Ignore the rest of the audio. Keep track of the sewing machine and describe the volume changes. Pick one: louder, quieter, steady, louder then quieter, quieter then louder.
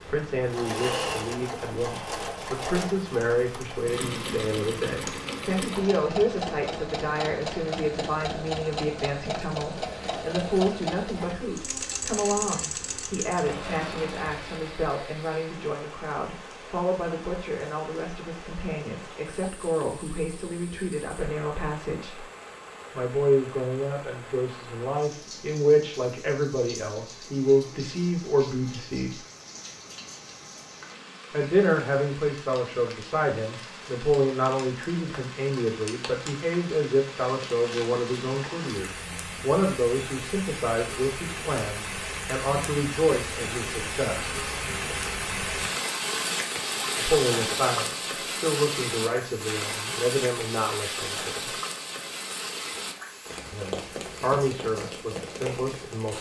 steady.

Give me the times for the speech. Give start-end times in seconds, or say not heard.
0.1-22.2, 22.9-29.2, 31.3-44.4, 47.0-51.5, 53.5-56.1.